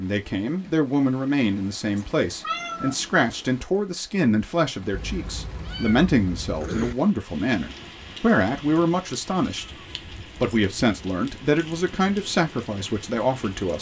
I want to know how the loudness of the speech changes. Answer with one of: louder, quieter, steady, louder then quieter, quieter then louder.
steady.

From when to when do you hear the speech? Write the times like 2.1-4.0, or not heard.
0.0-13.7.